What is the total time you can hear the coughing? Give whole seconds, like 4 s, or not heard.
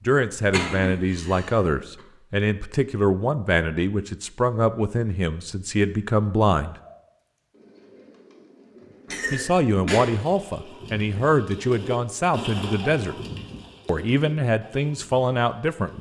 3 s.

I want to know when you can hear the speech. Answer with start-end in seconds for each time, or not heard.
0.0-6.8, 9.3-13.2, 13.8-15.9.